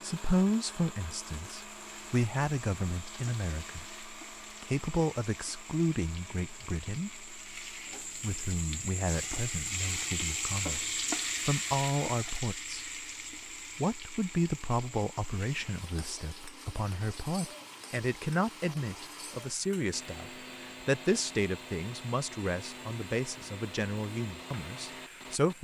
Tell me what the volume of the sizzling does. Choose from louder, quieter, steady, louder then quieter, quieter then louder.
louder then quieter.